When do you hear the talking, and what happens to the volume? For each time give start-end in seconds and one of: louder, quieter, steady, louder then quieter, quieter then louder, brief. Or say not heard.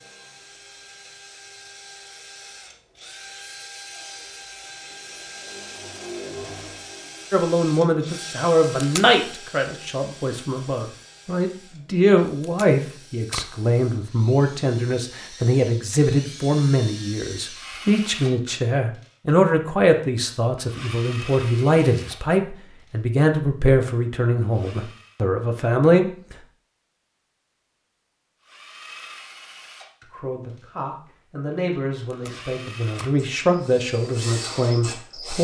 7.3-26.4 steady
30.1-35.3 louder.